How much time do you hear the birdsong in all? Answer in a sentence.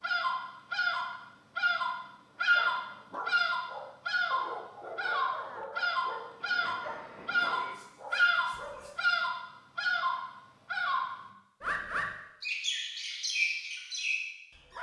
You can hear the birdsong for 15 seconds altogether.